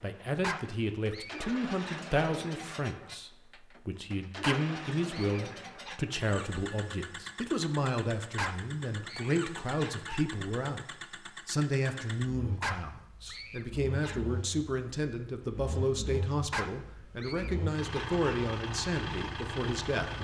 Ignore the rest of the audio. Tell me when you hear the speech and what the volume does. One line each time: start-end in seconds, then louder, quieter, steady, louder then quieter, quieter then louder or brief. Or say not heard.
0.0-20.1 steady.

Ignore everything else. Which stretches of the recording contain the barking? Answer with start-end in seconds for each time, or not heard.
0.4-2.1, 4.4-6.0, 8.3-10.2, 12.6-14.2, 16.5-18.2.